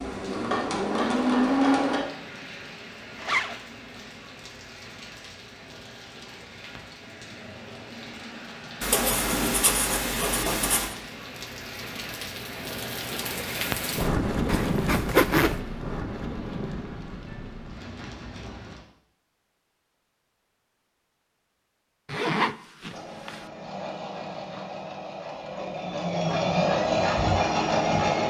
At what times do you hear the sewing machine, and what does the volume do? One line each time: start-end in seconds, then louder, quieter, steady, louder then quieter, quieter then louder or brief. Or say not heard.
0.0-2.0 brief
22.9-28.2 louder.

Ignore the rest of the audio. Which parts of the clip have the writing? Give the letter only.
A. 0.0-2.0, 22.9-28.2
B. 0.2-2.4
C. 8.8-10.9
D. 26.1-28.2
C.